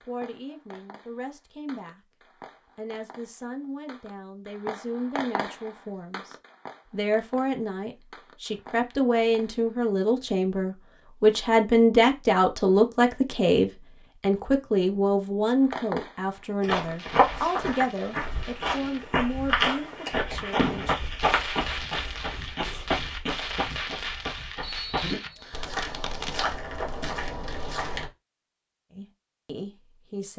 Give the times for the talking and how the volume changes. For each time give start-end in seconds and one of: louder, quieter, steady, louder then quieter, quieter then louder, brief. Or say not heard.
0.0-2.0 brief
2.8-20.9 louder then quieter
28.9-30.3 brief.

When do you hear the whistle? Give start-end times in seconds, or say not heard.
24.6-25.8.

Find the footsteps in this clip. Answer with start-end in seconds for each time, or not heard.
16.6-28.1.